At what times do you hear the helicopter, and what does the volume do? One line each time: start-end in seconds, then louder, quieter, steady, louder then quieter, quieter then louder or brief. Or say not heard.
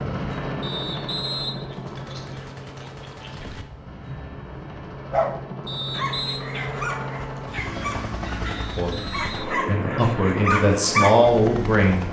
0.0-12.0 quieter then louder.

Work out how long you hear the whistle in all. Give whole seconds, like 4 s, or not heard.
3 s.